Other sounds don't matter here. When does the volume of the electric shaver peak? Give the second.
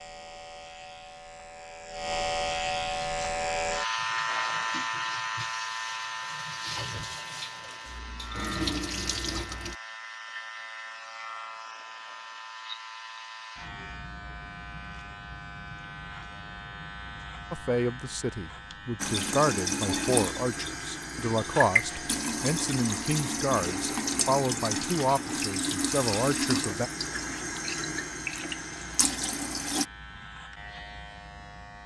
4 s.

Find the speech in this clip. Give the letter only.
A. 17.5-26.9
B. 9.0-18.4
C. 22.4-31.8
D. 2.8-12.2
A.